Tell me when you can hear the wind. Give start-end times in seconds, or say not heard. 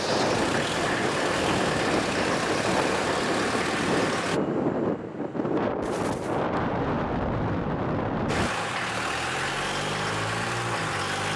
0.0-8.5.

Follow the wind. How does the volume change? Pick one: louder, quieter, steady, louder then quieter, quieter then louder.
steady.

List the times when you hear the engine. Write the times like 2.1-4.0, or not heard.
0.0-4.4, 8.2-11.3.